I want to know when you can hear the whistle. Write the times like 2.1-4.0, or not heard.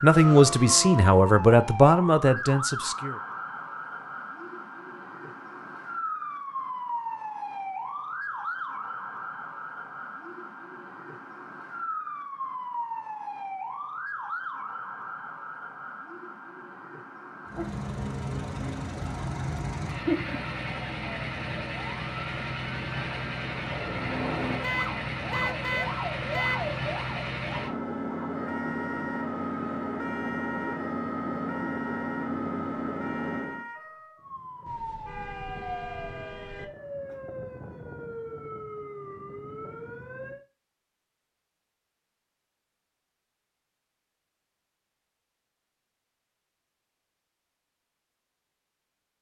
not heard.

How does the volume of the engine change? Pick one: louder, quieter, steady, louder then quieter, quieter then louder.
steady.